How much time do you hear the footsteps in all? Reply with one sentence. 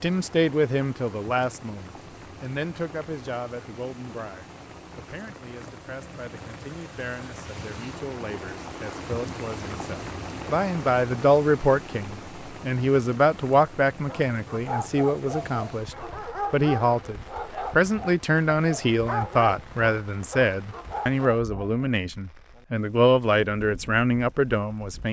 The footsteps can't be heard in this clip.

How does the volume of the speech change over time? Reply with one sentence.
The loudness of the speech goes down, then up.